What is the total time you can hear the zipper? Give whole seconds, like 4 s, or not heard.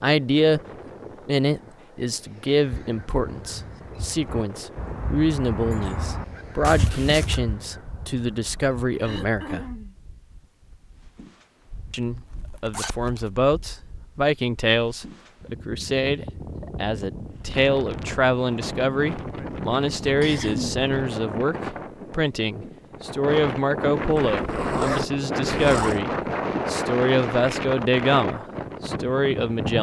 4 s.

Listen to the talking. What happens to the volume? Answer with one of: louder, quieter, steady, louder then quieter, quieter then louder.
steady.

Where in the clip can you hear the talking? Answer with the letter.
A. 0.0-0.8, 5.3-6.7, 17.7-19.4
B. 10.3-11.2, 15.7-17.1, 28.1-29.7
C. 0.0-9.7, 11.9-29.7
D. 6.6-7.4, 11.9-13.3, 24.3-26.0
C.